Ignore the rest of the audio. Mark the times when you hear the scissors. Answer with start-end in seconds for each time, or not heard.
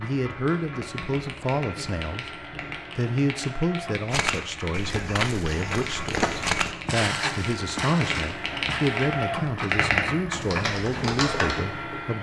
not heard.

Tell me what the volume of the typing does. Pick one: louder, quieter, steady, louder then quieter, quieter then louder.
louder.